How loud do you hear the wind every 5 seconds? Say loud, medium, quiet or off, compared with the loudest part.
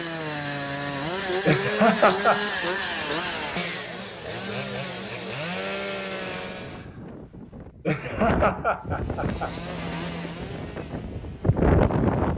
off, medium, loud.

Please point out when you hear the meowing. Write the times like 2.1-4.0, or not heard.
not heard.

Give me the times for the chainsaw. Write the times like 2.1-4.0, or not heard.
0.0-6.9, 8.8-12.3.